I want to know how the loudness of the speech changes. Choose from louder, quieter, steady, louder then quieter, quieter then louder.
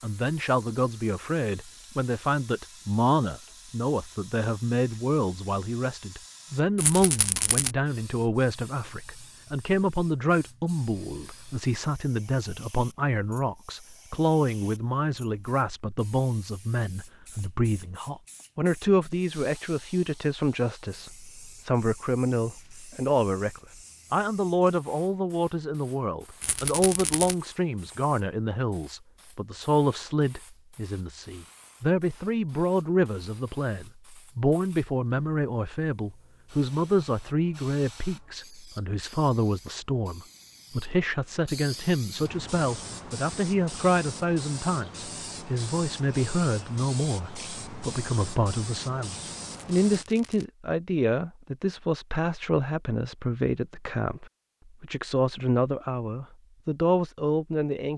steady.